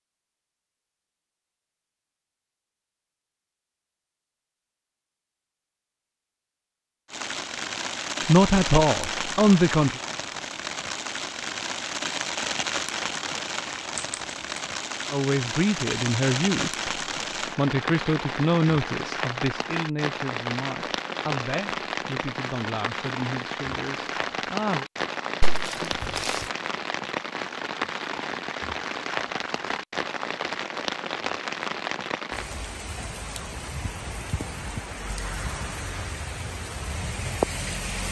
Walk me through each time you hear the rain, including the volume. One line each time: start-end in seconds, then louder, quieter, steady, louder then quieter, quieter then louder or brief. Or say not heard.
7.1-38.0 steady.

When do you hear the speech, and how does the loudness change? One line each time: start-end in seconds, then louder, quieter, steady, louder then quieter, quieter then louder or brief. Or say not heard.
8.2-10.0 brief
15.1-24.9 quieter.